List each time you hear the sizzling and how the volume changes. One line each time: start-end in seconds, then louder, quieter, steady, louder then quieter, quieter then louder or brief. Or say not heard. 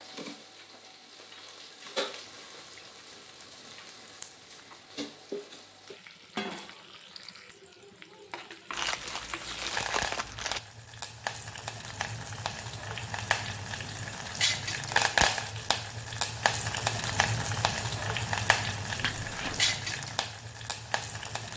0.0-21.5 louder.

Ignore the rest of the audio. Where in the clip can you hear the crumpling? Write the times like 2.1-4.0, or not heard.
2.2-4.8, 8.7-10.6, 19.0-19.8.